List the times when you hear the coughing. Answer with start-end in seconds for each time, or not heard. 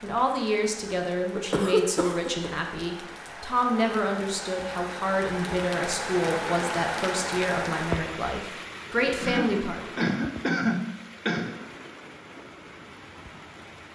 1.4-2.5, 9.2-11.5.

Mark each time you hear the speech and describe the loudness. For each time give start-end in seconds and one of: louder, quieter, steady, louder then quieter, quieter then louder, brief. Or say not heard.
0.0-9.9 steady.